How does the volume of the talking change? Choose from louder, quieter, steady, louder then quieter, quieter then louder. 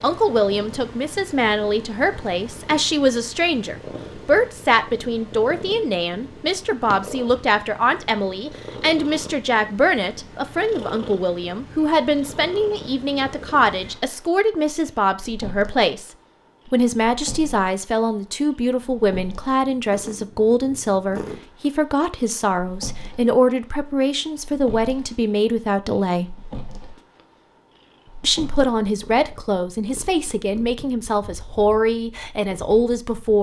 steady.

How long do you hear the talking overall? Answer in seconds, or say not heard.
31 s.